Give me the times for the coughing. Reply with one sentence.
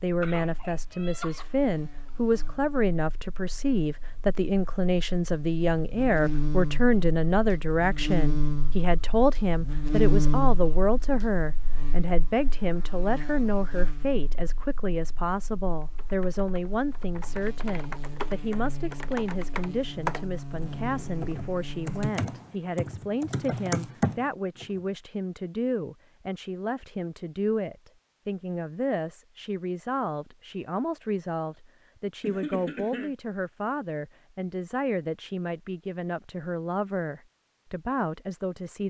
You can hear the coughing from 0.2 to 1.4 s and from 32.2 to 33.1 s.